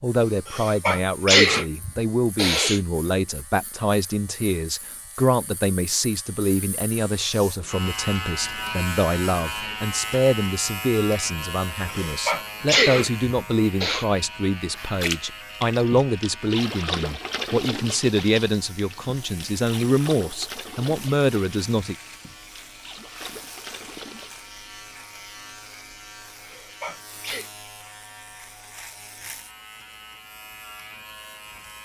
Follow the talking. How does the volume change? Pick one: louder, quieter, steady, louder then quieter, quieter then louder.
steady.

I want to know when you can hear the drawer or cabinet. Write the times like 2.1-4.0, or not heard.
not heard.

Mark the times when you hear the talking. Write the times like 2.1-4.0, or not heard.
0.0-21.9.